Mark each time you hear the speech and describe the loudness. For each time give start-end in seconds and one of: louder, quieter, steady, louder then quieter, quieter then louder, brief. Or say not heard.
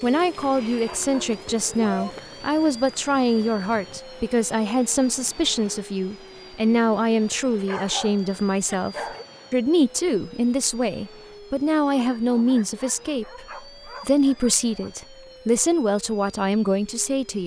0.0-17.4 steady.